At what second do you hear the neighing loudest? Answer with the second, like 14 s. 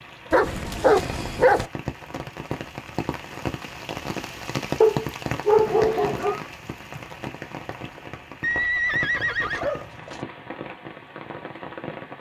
9 s.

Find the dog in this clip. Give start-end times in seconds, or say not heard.
0.3-1.7, 4.8-6.3, 9.2-10.2.